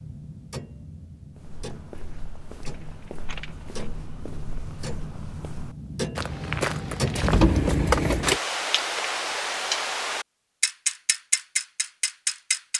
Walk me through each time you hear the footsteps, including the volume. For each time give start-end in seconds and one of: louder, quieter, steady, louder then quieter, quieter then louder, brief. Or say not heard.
1.4-7.5 louder.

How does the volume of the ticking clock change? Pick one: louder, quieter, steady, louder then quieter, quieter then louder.
louder.